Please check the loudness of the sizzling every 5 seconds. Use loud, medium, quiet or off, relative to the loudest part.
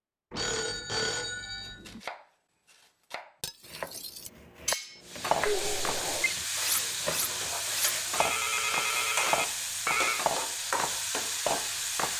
off, loud, loud.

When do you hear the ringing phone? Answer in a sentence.
You can hear the ringing phone from 0.3 to 2.0 s, from 5.5 to 6.3 s and from 8.2 to 10.2 s.